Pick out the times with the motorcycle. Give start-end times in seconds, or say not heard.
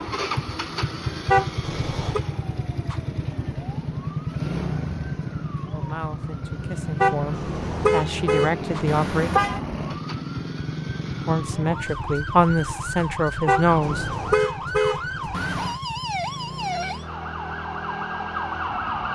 0.0-19.1.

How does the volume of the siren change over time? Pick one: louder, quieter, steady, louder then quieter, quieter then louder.
louder.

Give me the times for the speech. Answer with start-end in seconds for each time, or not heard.
5.7-9.3, 11.2-14.1.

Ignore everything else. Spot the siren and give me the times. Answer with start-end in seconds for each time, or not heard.
0.1-19.1.